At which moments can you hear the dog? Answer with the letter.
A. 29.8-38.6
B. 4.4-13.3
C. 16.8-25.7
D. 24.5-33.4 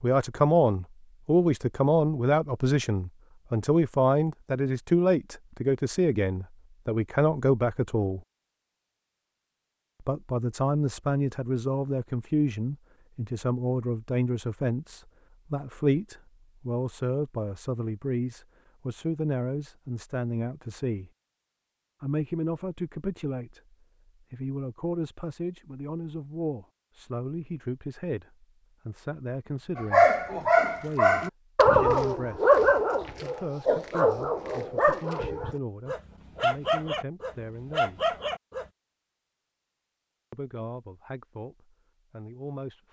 A.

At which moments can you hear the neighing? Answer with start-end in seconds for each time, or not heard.
not heard.